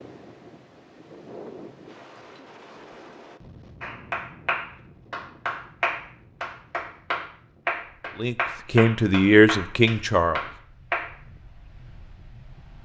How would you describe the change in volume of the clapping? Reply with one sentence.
The volume of the clapping stays about the same.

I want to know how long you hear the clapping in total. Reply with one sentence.
The clapping can be heard for 7 seconds in total.